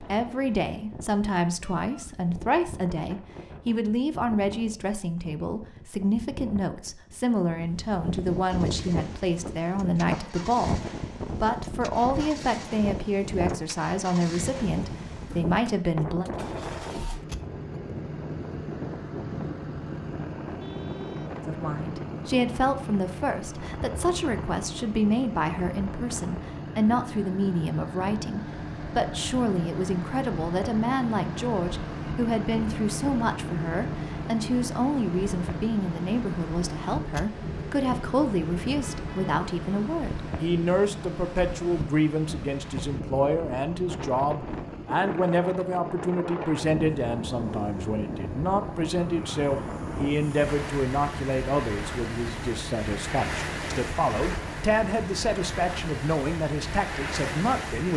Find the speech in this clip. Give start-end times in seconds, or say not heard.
0.0-16.2, 21.4-57.9.